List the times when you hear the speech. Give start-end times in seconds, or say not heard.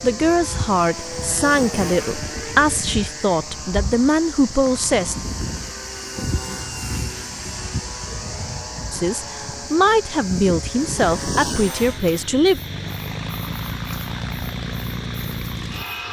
0.0-5.2, 8.9-12.6.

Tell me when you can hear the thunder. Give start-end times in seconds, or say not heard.
not heard.